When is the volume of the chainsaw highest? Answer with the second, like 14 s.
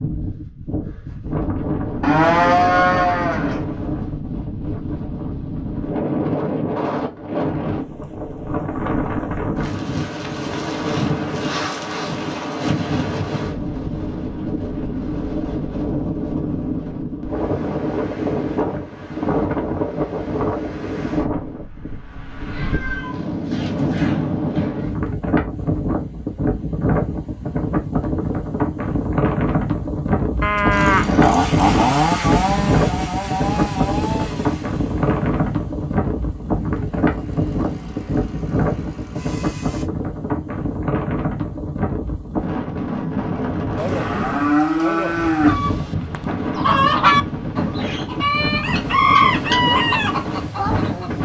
32 s.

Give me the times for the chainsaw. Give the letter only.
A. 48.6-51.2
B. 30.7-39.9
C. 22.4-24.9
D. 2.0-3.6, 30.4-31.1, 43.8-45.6
B.